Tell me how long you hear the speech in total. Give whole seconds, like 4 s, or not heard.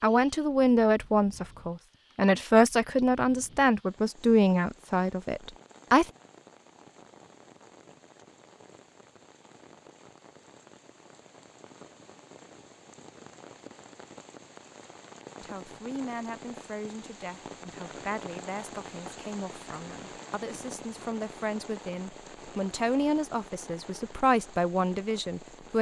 16 s.